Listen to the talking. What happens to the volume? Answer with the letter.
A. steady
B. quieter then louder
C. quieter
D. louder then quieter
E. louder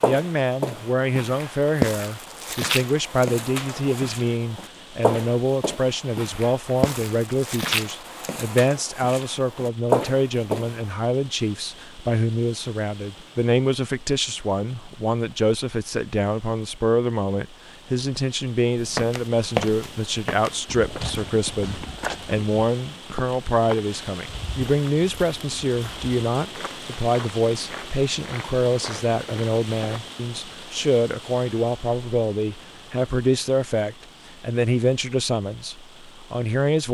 A.